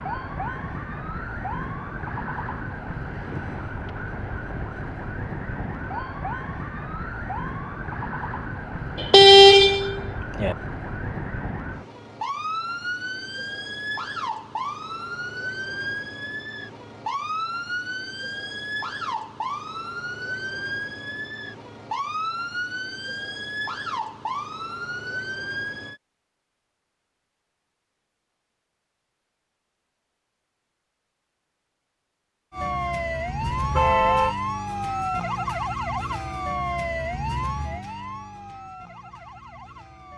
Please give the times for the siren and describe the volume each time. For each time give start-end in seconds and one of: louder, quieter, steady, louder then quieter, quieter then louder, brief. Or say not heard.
0.0-26.0 steady
32.5-40.1 quieter.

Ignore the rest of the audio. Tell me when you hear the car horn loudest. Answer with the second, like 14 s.
9 s.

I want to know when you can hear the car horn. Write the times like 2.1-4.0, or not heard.
8.9-10.6, 33.4-34.4.